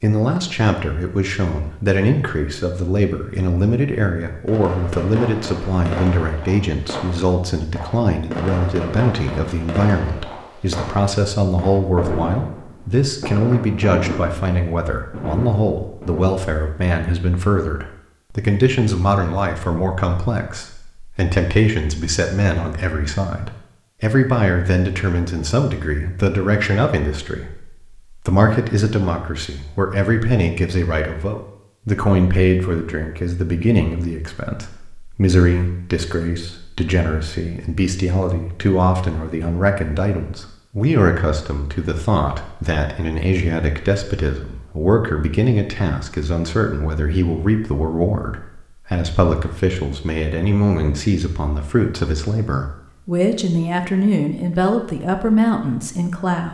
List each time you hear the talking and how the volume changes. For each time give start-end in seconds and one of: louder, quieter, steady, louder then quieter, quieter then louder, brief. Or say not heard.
0.0-56.4 steady.